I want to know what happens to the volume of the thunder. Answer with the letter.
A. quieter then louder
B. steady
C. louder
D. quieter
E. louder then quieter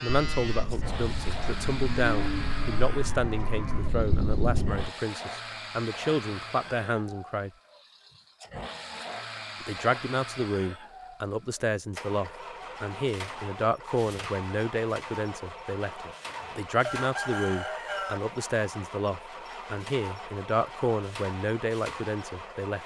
C.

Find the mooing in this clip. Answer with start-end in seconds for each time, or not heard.
0.0-3.9.